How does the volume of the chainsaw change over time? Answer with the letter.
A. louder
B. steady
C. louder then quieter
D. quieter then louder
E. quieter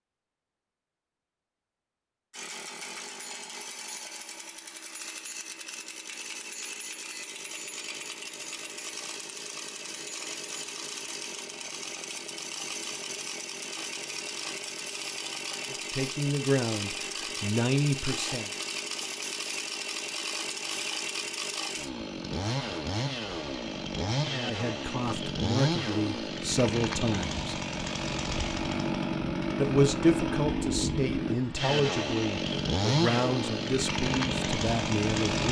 A.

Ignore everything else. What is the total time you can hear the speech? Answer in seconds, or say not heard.
12 s.